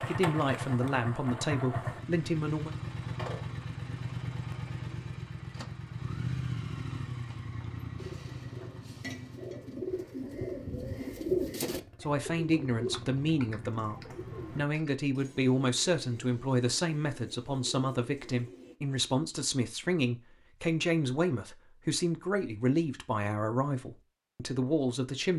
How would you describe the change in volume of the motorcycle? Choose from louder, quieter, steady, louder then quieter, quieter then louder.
quieter.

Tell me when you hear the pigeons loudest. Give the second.
11 s.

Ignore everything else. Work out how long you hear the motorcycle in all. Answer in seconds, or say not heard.
15 s.